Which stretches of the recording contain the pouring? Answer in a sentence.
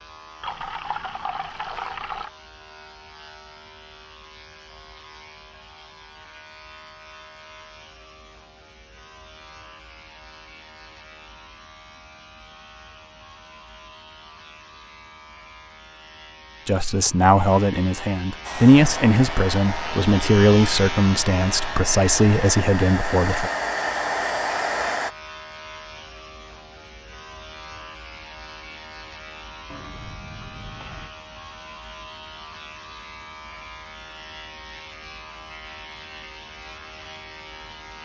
You can hear the pouring from 0.4 to 2.3 s and from 29.7 to 31.1 s.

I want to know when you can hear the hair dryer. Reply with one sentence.
You can hear the hair dryer from 18.4 to 25.1 s.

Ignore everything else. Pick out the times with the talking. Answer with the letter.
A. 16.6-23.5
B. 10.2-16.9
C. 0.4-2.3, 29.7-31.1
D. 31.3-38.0
A.